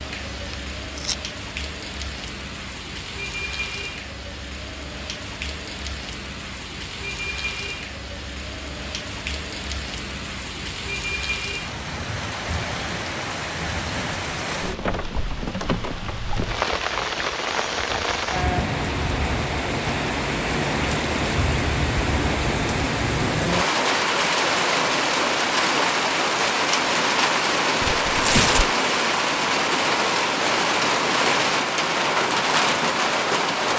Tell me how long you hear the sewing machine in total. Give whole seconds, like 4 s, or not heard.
not heard.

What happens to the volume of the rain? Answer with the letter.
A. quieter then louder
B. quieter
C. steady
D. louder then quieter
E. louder
E.